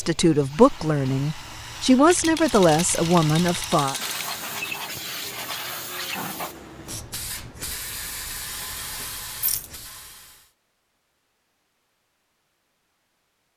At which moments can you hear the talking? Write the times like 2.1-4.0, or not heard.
0.0-4.0.